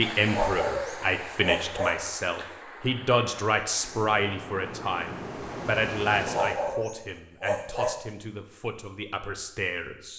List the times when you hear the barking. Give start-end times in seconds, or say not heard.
0.2-2.0, 6.2-8.0.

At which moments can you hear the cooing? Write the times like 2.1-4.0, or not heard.
not heard.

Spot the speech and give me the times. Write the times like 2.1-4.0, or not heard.
0.0-10.1.